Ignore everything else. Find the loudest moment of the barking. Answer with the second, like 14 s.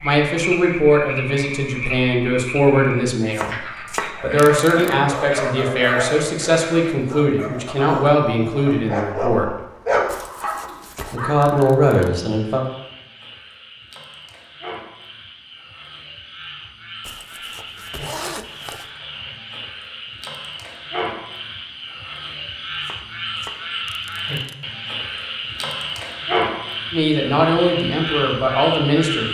10 s.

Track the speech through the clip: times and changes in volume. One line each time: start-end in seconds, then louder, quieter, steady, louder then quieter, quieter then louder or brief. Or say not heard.
0.0-9.6 steady
11.1-12.7 brief
26.9-29.2 brief.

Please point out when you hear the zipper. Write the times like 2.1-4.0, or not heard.
10.1-11.2, 17.0-18.9.